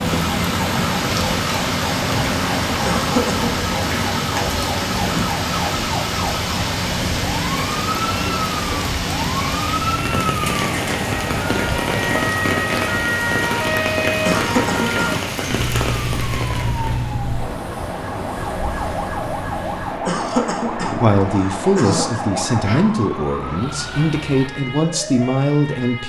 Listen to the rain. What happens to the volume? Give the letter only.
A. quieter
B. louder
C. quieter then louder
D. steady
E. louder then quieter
D.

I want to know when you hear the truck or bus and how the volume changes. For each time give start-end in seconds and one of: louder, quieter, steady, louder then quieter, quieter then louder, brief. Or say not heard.
0.0-24.5 quieter.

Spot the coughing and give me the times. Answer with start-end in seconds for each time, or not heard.
2.9-3.5, 14.2-15.2, 20.1-22.2.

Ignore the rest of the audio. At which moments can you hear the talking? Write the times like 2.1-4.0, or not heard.
20.8-26.0.